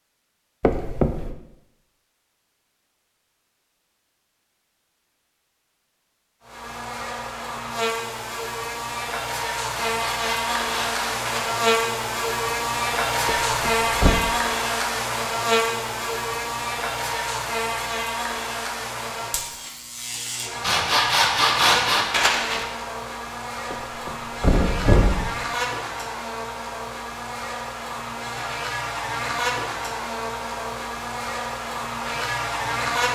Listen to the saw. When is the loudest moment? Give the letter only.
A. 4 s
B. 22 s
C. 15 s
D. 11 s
B.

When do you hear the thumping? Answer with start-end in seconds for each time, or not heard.
0.6-1.4, 13.2-14.2, 23.7-25.3.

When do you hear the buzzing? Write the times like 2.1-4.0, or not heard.
6.5-33.1.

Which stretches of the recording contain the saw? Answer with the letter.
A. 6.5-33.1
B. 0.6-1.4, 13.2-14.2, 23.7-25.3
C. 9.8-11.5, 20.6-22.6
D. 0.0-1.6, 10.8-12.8
C.